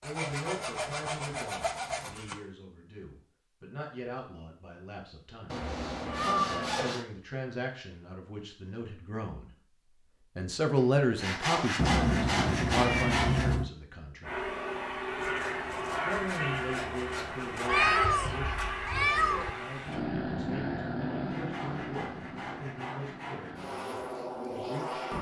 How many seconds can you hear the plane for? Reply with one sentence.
You can hear the plane for 11 seconds altogether.